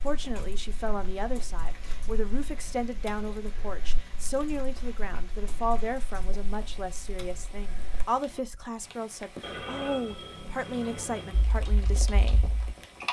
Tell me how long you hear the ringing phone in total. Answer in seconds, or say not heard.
2 s.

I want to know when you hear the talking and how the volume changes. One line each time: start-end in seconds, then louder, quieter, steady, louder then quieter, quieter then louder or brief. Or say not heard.
0.0-12.6 steady.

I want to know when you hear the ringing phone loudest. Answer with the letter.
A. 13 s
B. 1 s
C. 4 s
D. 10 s
D.